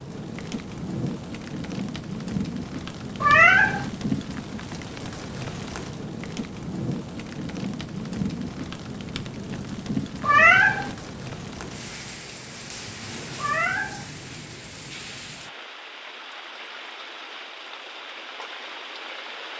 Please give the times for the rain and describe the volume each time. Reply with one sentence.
You can hear the rain from 0.0 to 19.5 s, getting quieter.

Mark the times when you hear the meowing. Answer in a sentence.
You can hear the meowing from 3.2 to 3.9 s, from 10.2 to 10.9 s and from 13.3 to 14.1 s.